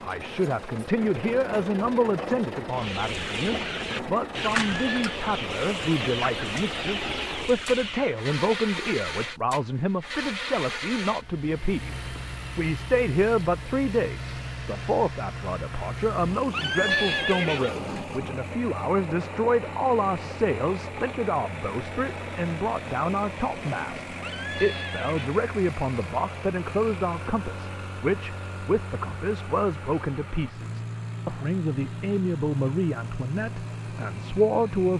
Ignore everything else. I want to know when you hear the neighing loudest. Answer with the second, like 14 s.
17 s.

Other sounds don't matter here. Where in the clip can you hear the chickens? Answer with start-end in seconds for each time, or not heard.
2.7-8.2.